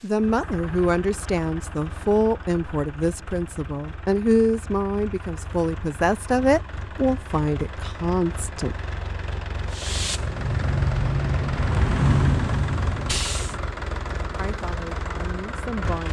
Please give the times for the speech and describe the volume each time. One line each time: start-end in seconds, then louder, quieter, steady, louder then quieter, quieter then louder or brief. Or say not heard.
0.0-8.8 steady
14.3-16.0 brief.